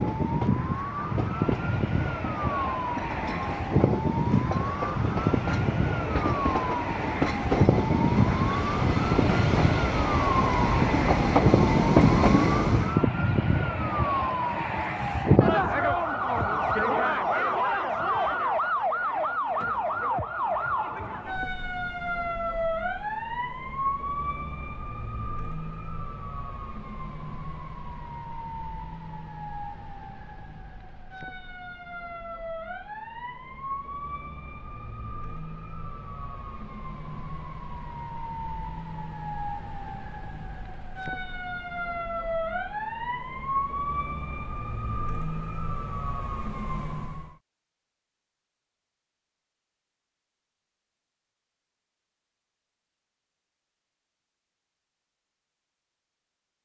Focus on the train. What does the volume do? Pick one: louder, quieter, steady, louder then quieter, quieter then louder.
louder.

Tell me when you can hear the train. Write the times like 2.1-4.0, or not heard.
0.0-13.0.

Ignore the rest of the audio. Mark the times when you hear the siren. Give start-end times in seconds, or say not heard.
0.0-47.4.